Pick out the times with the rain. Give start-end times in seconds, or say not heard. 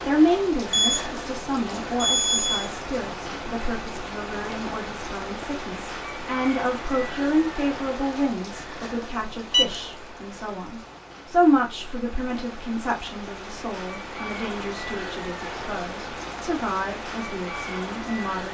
0.0-18.4.